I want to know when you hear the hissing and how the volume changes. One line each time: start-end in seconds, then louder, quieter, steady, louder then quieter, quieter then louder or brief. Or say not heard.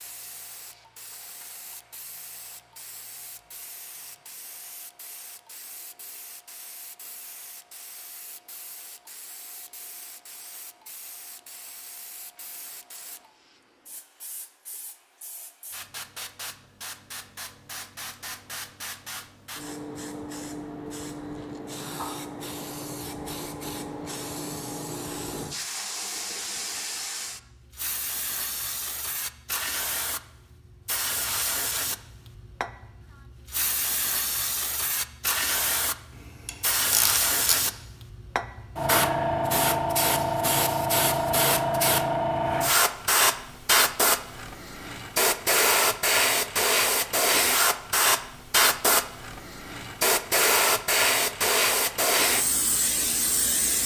0.0-53.8 louder.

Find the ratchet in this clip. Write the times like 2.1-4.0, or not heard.
36.1-37.5.